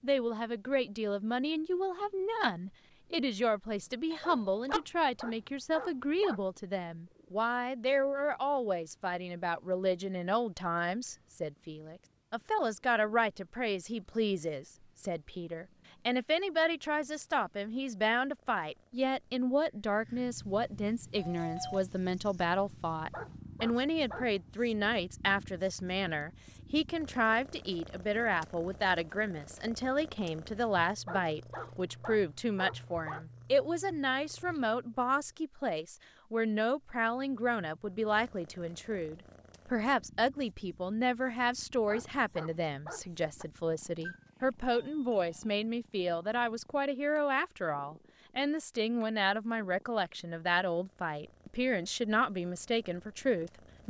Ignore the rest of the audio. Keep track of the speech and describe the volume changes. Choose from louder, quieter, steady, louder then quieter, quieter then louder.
steady.